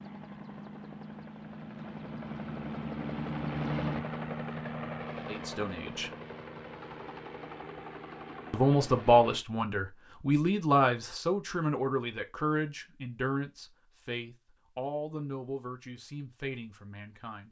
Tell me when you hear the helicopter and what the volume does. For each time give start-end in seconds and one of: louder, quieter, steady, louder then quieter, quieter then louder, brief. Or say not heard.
0.0-9.4 louder then quieter.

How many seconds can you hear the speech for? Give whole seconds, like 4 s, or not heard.
10 s.